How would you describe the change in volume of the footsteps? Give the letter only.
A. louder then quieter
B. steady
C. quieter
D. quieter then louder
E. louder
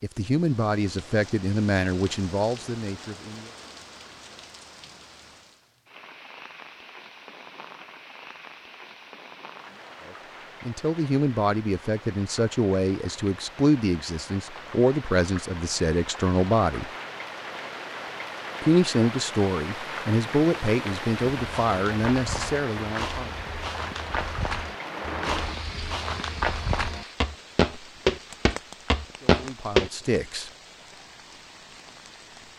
E.